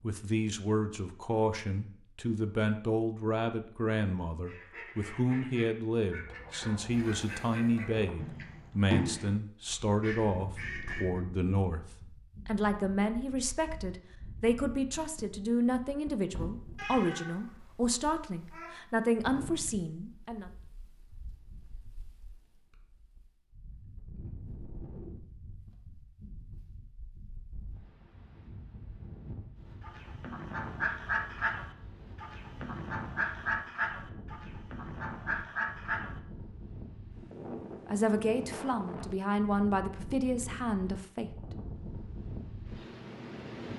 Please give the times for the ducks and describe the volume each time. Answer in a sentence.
You can hear the ducks from 4.5 to 11.2 s, getting louder then quieter; and from 29.8 to 36.2 s, at a steady volume.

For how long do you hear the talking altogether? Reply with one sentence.
You can hear the talking for 24 seconds altogether.